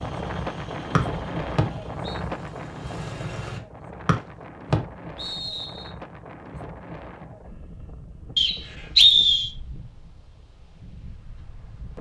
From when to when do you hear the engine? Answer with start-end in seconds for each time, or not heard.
0.0-3.6.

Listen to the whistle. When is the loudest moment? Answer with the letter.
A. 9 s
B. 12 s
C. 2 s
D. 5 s
A.